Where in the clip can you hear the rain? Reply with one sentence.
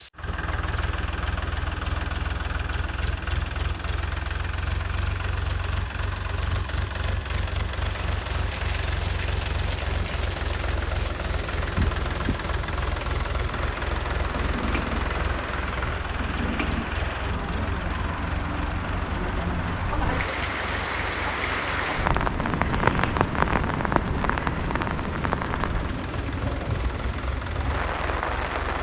The rain can be heard from 7.8 to 28.7 s.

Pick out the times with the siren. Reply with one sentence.
The siren can't be heard in this clip.